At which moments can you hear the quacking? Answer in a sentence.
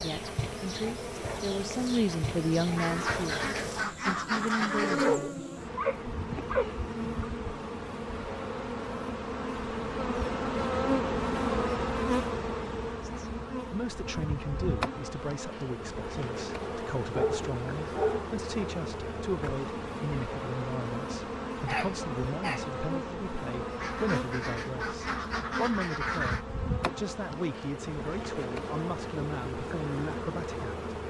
The quacking can be heard from 2.8 to 5.2 s and from 23.8 to 26.4 s.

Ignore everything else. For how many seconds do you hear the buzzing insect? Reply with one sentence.
You can hear the buzzing insect for 31 seconds altogether.